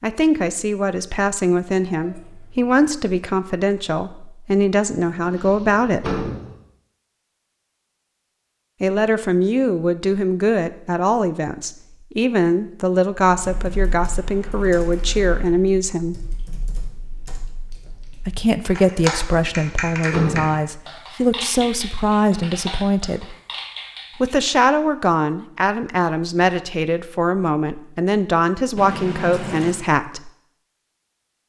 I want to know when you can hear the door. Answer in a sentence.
The door can be heard from 5.2 to 6.5 s and from 19.2 to 20.6 s.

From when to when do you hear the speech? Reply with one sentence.
You can hear the speech from 0.0 to 6.2 s, from 8.8 to 16.2 s, from 18.2 to 23.4 s and from 24.2 to 30.3 s.